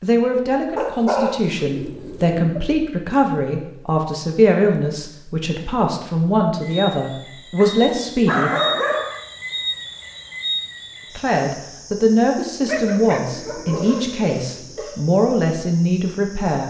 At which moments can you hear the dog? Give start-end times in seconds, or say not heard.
0.8-2.2, 7.6-9.2, 12.7-14.2.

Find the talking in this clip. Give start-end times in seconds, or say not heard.
0.0-8.6, 11.2-16.6.